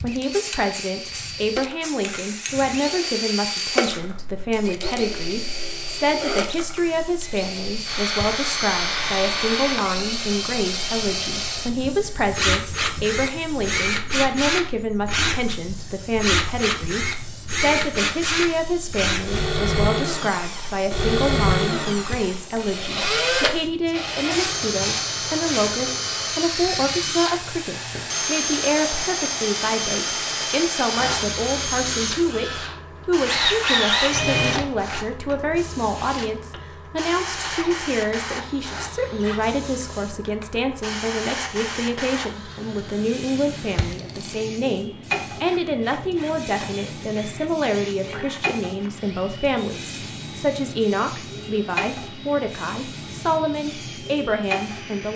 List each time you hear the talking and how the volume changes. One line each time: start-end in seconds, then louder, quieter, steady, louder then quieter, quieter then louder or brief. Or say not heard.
0.0-55.1 steady.